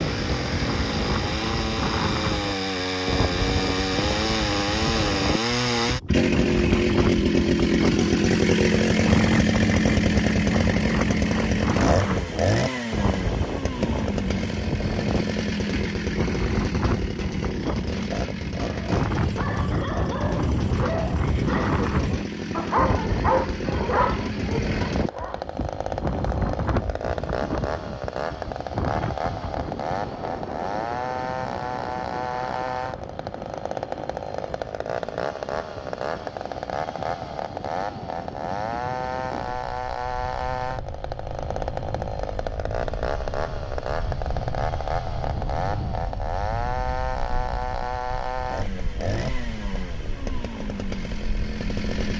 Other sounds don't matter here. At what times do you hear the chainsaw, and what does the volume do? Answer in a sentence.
The chainsaw can be heard from 0.0 to 52.1 s, getting quieter.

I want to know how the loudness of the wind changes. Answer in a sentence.
The volume of the wind goes down.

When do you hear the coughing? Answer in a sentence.
You can't hear the coughing here.